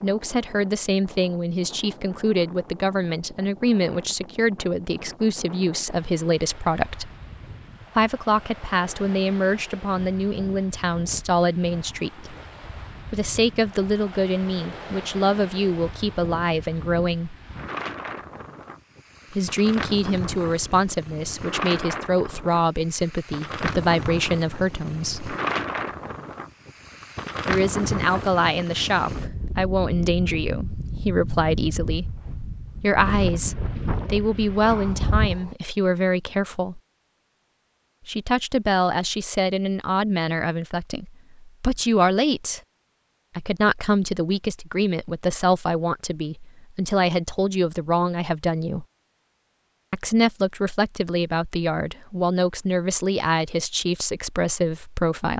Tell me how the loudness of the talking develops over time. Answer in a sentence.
The volume of the talking stays about the same.